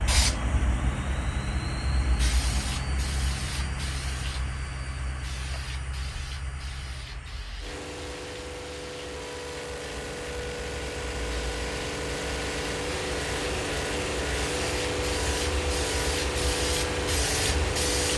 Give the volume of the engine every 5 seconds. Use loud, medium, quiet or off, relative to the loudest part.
medium, medium, loud, loud.